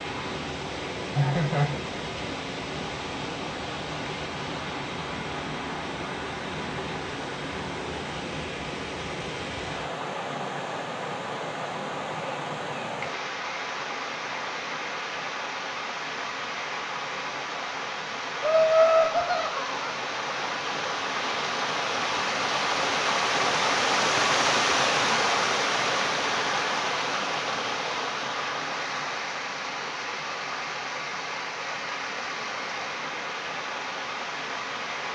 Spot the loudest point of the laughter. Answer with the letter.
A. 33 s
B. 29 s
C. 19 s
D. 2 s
C.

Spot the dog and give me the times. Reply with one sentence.
You can't hear the dog here.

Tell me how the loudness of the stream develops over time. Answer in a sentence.
The loudness of the stream goes up, then down.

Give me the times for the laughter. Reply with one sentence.
The laughter can be heard from 1.1 to 1.8 s and from 18.4 to 19.9 s.